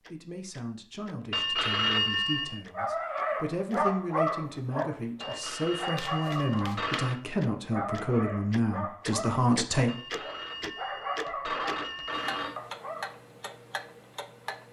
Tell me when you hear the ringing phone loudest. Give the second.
2 s.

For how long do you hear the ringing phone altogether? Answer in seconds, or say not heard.
6 s.